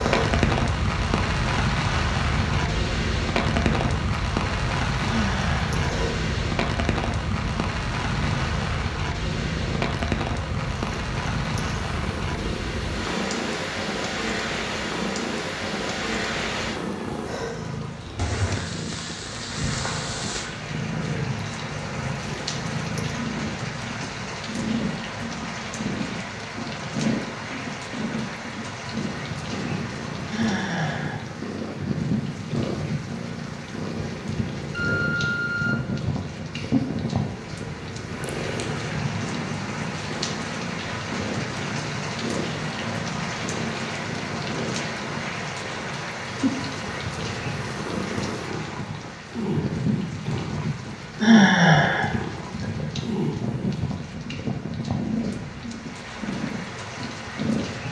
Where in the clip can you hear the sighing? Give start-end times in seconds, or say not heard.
5.0-5.7, 30.3-31.2, 51.2-52.1.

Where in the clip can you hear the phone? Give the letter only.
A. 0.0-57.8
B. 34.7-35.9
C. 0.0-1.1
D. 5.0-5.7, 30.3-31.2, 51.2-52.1
B.